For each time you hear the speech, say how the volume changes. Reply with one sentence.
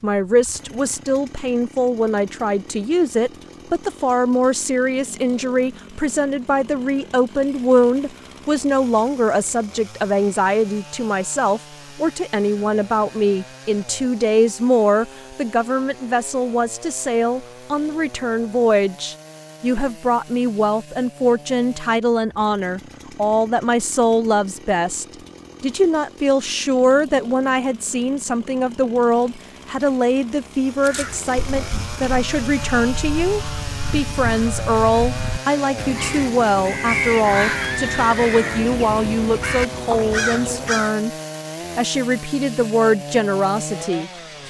You can hear the speech from 0.0 to 41.1 s, at a steady volume; and briefly from 41.8 to 44.4 s.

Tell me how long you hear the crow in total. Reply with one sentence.
The crow can be heard for 10 seconds in total.